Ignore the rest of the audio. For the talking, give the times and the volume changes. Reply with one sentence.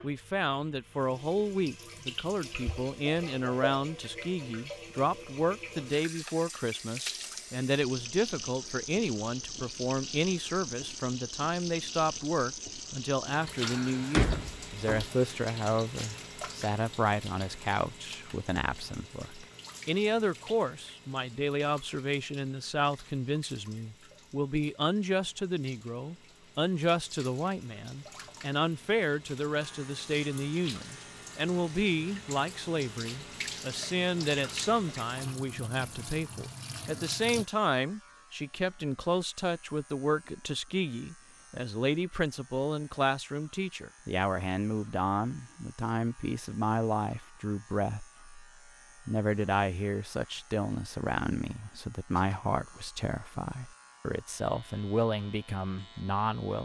The talking can be heard from 0.0 to 48.5 s, at a steady volume; and from 49.0 to 56.6 s, at a steady volume.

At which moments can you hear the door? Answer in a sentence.
You can hear the door from 13.6 to 15.1 s.